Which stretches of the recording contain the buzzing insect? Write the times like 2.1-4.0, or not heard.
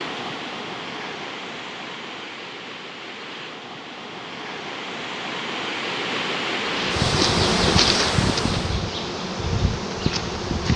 6.6-10.7.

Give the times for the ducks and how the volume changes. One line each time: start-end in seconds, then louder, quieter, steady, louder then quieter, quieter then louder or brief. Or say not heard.
not heard.